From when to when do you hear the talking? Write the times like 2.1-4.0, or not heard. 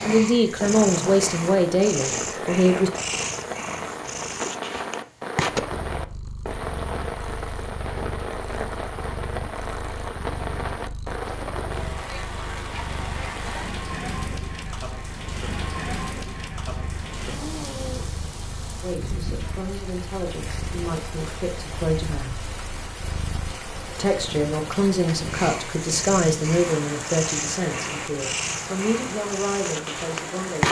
0.0-2.9, 18.8-22.4, 23.9-30.6.